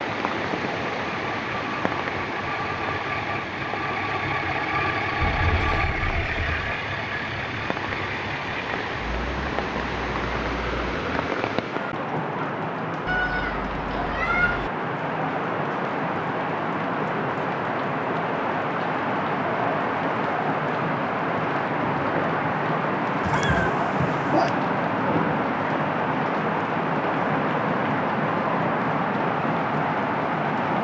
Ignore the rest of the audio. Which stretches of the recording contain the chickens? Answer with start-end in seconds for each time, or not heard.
not heard.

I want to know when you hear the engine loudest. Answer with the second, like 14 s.
5 s.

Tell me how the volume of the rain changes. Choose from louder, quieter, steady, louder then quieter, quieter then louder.
louder.